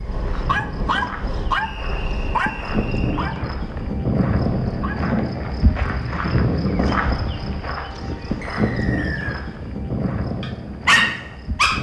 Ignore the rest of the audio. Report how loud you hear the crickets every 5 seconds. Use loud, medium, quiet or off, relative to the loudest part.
loud, loud, medium.